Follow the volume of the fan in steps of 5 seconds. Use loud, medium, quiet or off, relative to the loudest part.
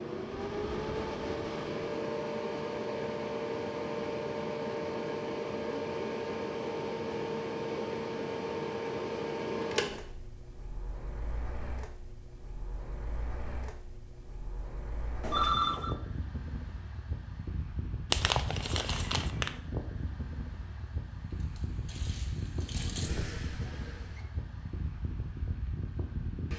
loud, loud, quiet, medium, medium, medium.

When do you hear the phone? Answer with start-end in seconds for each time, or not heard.
15.2-15.9.